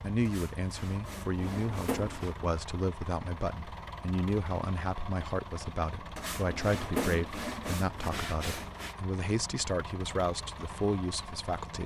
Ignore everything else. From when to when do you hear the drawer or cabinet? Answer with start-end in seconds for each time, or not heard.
1.4-2.2, 6.5-7.2.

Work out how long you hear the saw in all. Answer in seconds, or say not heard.
5 s.